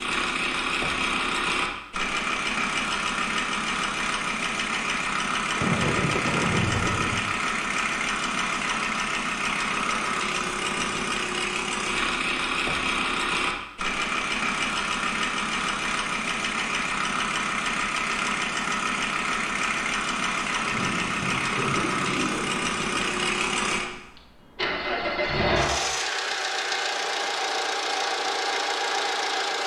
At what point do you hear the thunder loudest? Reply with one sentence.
The volume of the thunder peaks at 6 seconds.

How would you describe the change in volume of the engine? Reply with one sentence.
The loudness of the engine stays about the same.